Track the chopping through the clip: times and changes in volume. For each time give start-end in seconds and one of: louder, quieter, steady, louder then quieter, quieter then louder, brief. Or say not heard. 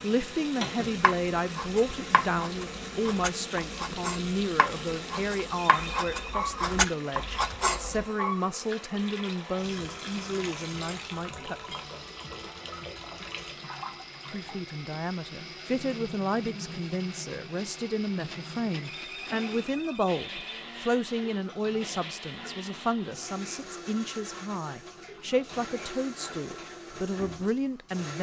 1.0-8.0 louder.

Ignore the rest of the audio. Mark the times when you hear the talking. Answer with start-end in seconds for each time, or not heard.
0.0-11.6, 14.2-28.1.